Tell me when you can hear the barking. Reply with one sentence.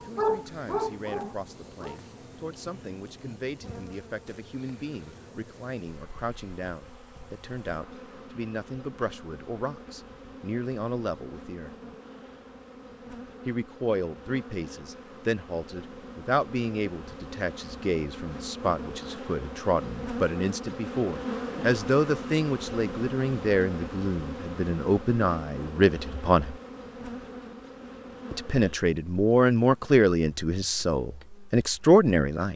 You can hear the barking from 0.0 to 1.9 s.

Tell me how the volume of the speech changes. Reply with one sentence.
The volume of the speech goes up.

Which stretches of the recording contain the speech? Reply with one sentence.
The speech can be heard from 0.0 to 11.7 s, from 13.4 to 26.6 s and from 28.3 to 32.5 s.